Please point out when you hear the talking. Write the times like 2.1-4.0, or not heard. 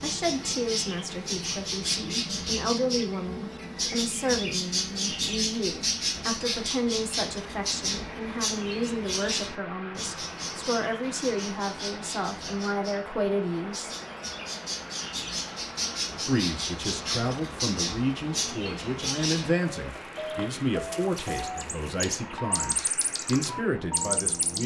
0.0-13.9, 16.2-24.6.